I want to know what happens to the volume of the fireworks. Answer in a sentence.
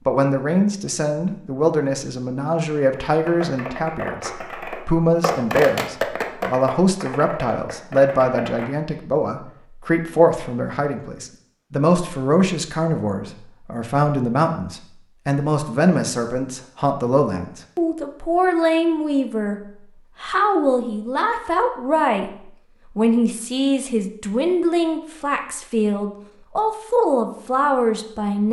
The volume of the fireworks goes up, then down.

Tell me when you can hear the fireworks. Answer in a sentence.
The fireworks can be heard from 3.0 to 8.7 s.